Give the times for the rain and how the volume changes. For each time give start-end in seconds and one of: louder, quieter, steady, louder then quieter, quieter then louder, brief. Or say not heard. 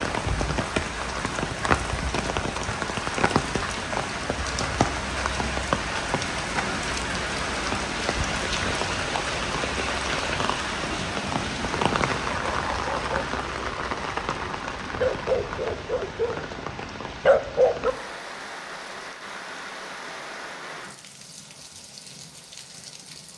0.0-23.3 quieter.